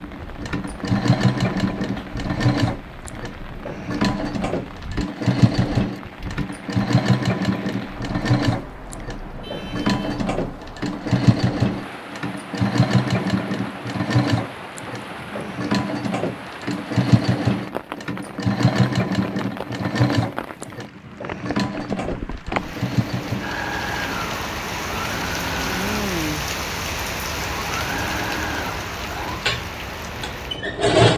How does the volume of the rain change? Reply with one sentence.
The volume of the rain goes up.